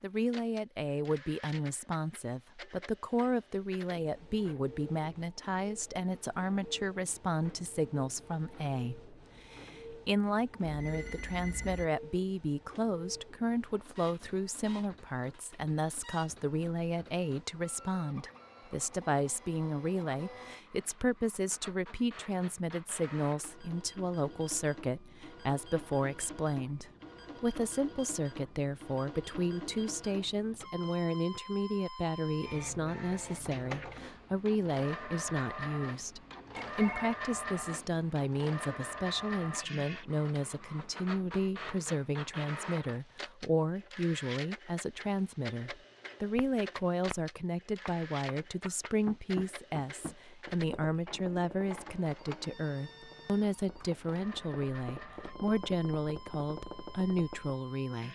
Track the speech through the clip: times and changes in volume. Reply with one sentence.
The speech can be heard from 0.0 to 58.0 s, at a steady volume.